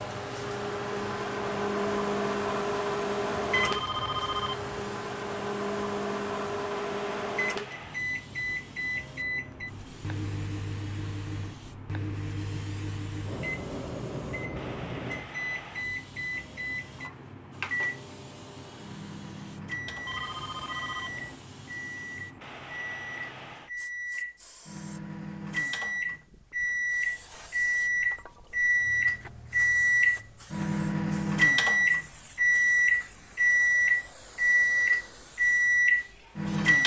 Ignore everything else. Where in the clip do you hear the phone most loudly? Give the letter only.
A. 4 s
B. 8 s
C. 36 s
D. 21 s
A.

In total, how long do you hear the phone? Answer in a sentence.
You can hear the phone for 3 seconds altogether.